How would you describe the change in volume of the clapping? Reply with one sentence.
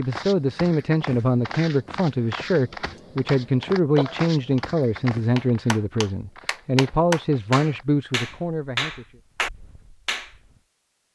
The volume of the clapping goes up.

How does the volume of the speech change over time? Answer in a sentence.
The loudness of the speech stays about the same.